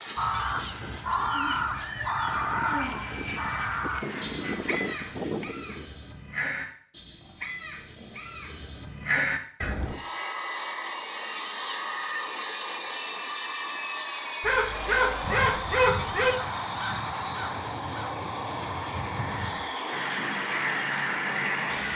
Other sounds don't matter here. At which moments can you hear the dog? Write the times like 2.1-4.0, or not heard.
14.4-16.4.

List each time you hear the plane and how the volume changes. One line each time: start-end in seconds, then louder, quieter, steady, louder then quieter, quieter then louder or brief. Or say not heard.
0.0-6.0 louder
9.7-21.9 steady.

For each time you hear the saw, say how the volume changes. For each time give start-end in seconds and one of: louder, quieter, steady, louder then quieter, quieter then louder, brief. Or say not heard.
not heard.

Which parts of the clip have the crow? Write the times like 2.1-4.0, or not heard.
0.1-9.9, 15.2-21.9.